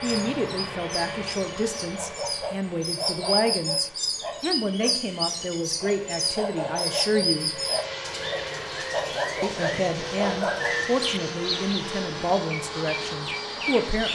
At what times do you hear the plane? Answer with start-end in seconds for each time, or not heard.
0.0-14.1.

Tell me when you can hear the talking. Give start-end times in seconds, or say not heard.
0.0-7.6, 9.4-14.1.